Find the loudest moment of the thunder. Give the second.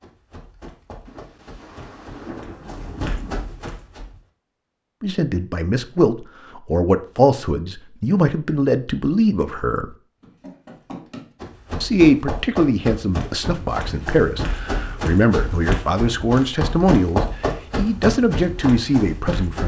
2 s.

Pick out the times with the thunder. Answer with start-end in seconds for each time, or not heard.
1.1-3.5.